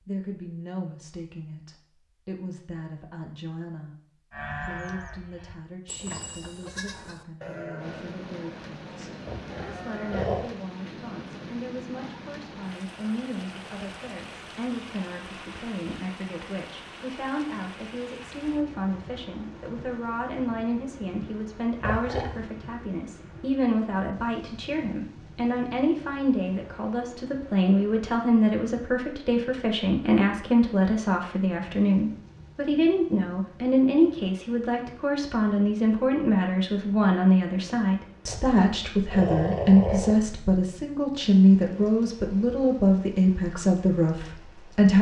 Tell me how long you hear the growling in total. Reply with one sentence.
The growling can be heard for 4 seconds in total.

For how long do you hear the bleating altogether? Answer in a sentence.
You can hear the bleating for 6 seconds altogether.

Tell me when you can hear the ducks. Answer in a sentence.
You can't hear the ducks here.